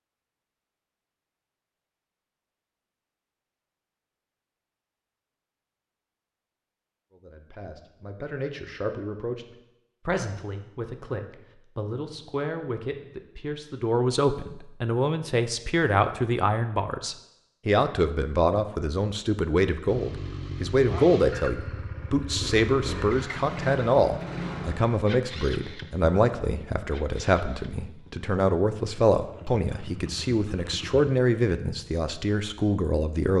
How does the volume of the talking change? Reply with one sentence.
The volume of the talking goes up.